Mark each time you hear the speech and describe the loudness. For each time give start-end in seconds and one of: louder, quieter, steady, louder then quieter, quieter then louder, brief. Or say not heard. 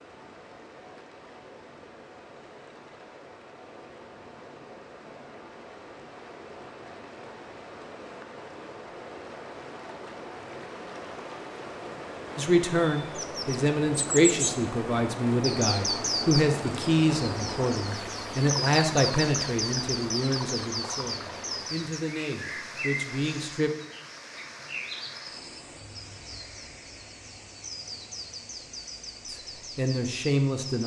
12.3-23.7 quieter
29.3-30.8 brief.